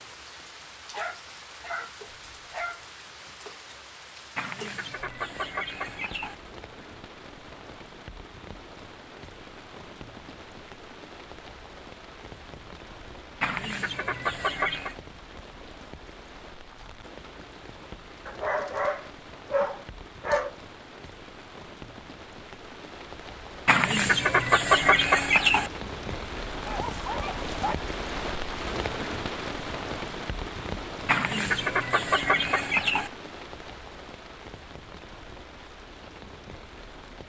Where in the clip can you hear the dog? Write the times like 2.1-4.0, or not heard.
0.9-2.8, 18.2-20.5, 26.6-27.8.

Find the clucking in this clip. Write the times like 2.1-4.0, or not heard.
4.3-6.3, 13.4-14.9, 23.6-25.7, 31.1-33.1.